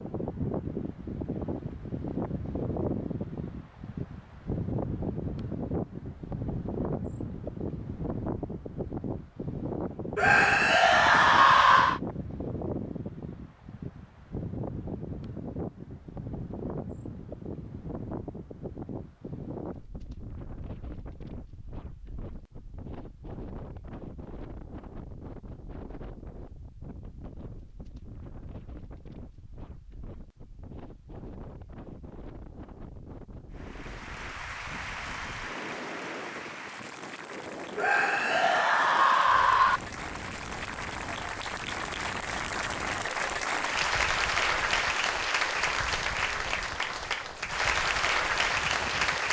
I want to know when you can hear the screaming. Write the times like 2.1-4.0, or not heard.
10.2-12.0, 37.8-39.8.